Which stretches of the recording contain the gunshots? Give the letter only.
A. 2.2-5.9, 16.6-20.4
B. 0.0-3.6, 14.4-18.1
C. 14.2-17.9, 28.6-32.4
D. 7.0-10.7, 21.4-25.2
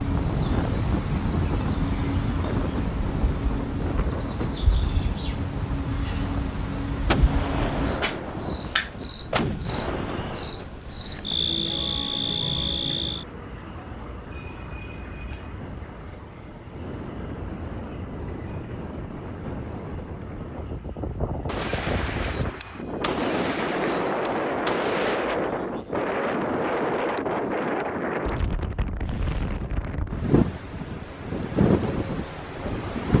D.